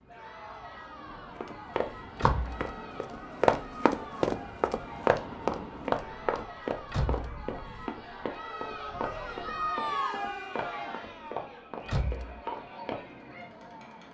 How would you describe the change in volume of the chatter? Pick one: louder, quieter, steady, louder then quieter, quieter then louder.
louder then quieter.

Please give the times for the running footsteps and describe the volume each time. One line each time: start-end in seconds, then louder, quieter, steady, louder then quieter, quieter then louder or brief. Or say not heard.
1.1-13.0 quieter.